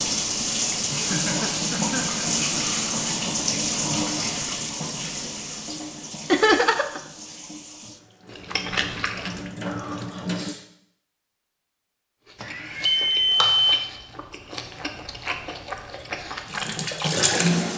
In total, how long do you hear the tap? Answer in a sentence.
The tap can be heard for 12 seconds in total.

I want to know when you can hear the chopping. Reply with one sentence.
You can't hear the chopping here.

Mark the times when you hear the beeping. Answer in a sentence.
The beeping can be heard from 12.4 to 13.8 s.